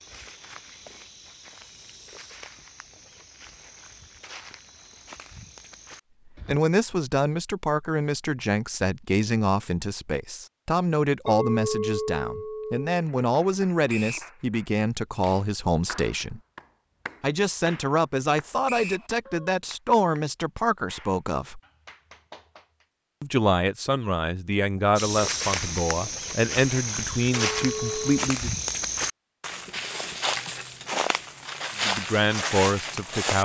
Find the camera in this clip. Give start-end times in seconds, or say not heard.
not heard.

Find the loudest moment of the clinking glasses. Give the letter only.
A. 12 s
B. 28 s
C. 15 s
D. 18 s
A.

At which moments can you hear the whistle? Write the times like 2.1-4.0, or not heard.
13.8-14.3, 18.6-19.1.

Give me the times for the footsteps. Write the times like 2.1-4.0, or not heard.
0.0-6.6, 24.9-33.4.